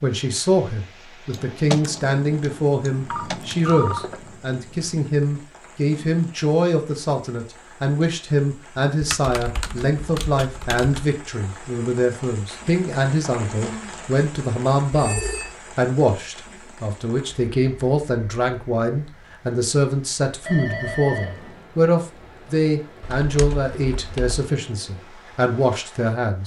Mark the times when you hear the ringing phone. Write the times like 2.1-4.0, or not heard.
3.1-4.9, 14.9-15.6, 20.4-21.6.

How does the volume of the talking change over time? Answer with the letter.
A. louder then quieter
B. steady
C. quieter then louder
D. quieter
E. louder
B.